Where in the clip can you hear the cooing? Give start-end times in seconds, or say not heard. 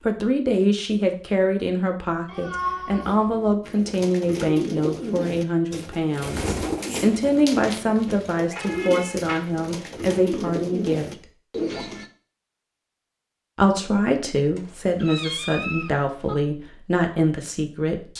3.6-12.1.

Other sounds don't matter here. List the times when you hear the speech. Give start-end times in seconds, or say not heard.
0.1-11.1, 13.6-18.1.